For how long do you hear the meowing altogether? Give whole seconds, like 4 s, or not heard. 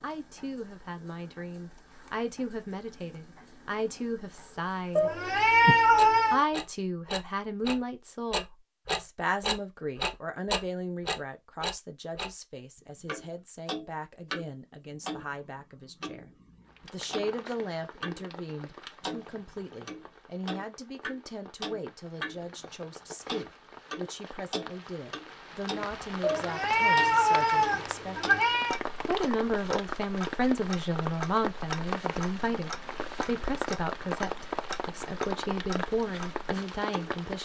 4 s.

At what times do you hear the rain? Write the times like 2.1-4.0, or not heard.
16.6-37.4.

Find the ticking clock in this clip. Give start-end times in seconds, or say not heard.
0.0-12.3, 13.1-18.4, 19.0-37.2.